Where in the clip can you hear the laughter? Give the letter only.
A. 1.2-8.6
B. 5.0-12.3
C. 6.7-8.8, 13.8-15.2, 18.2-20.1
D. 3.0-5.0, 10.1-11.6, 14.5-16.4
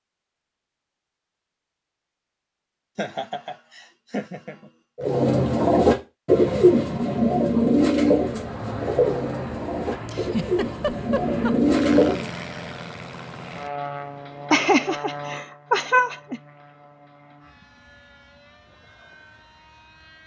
D.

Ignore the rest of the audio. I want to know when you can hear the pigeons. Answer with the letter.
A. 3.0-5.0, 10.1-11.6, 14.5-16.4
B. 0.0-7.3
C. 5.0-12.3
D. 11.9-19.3
C.